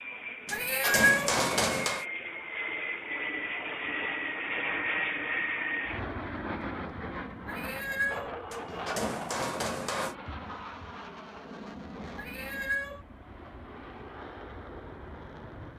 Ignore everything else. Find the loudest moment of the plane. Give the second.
5 s.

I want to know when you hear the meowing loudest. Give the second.
1 s.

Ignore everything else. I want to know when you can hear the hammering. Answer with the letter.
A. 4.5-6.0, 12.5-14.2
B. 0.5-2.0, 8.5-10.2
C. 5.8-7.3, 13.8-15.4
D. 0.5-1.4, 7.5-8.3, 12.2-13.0
B.